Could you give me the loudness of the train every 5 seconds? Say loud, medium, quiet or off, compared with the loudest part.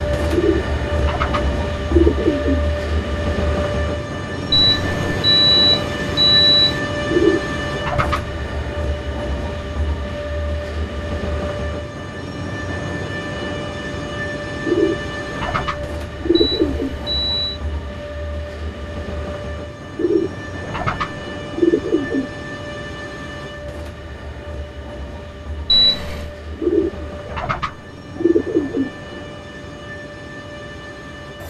loud, loud, loud, medium, medium, medium, medium.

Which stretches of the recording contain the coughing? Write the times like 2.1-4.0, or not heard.
not heard.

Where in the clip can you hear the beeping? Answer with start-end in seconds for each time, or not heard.
4.5-6.8, 16.4-17.6, 25.6-26.3.